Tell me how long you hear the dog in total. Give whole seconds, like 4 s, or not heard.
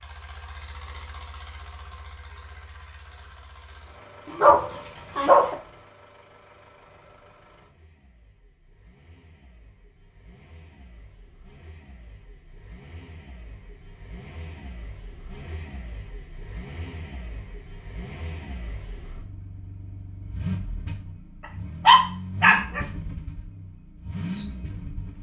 2 s.